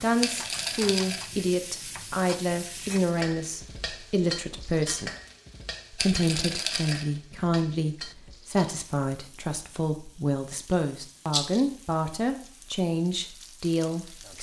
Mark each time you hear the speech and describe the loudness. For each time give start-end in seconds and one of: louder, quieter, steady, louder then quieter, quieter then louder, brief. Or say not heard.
0.0-5.1 steady
5.9-14.3 steady.